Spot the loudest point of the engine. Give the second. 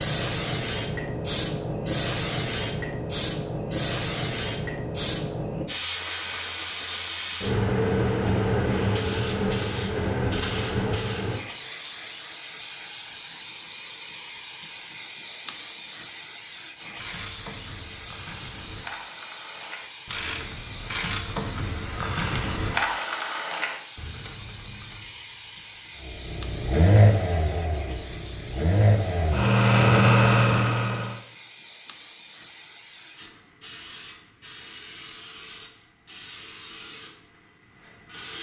30 s.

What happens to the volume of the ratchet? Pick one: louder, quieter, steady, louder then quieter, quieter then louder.
louder then quieter.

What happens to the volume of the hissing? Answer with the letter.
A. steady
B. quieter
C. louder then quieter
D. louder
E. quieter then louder
B.